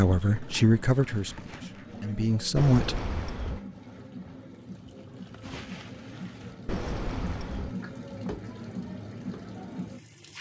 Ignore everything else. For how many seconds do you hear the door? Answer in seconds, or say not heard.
2 s.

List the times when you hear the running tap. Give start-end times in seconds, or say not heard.
0.0-10.3.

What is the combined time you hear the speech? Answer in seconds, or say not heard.
3 s.